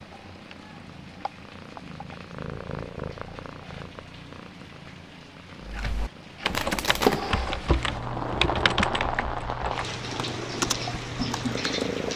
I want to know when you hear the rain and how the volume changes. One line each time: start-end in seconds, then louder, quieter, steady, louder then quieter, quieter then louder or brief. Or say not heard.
0.0-12.1 louder.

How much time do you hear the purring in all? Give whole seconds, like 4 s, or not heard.
12 s.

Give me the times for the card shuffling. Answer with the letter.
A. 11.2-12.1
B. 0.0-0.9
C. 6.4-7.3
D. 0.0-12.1
C.